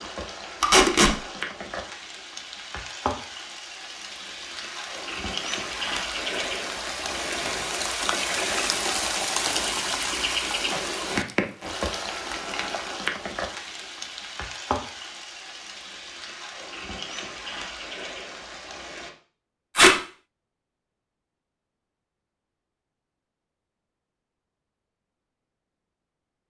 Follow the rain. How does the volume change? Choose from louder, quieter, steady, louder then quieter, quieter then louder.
louder then quieter.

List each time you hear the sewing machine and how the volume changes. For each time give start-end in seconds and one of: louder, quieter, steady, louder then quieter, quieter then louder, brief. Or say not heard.
not heard.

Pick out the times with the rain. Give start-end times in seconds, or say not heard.
0.0-19.1.